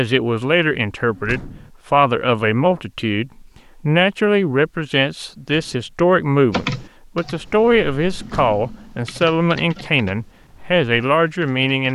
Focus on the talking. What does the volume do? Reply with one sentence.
The loudness of the talking stays about the same.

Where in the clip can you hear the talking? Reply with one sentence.
You can hear the talking from 0.0 to 11.9 s.